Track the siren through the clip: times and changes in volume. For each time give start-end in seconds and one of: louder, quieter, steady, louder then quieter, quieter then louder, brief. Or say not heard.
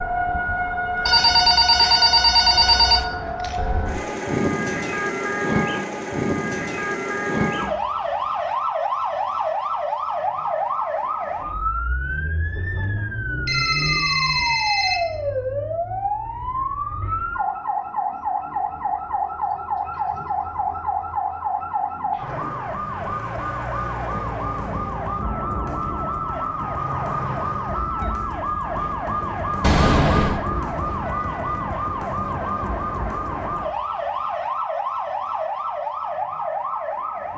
0.0-37.3 steady.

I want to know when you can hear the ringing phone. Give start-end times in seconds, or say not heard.
1.1-3.0, 13.4-15.0, 29.6-30.4.